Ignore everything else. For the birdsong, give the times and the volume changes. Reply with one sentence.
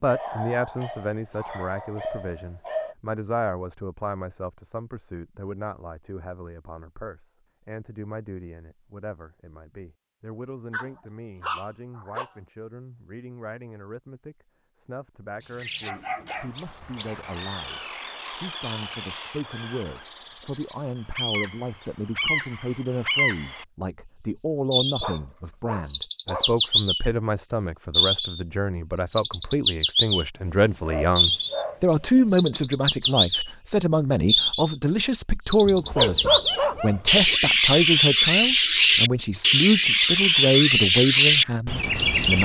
The birdsong can be heard from 15.4 to 42.4 s, getting louder.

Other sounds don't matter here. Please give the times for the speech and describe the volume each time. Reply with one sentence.
You can hear the speech from 0.0 to 42.4 s, getting quieter then louder.